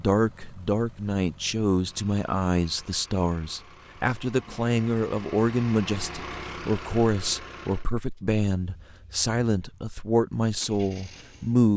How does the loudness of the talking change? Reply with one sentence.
The loudness of the talking stays about the same.